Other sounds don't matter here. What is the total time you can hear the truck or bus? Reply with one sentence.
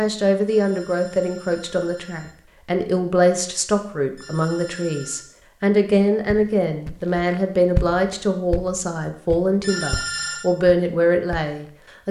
You can't hear the truck or bus here.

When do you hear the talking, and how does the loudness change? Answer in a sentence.
You can hear the talking from 0.0 to 12.0 s, at a steady volume.